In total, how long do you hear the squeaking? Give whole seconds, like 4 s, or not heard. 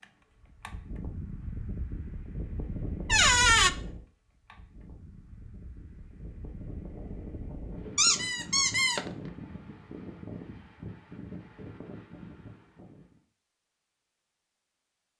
2 s.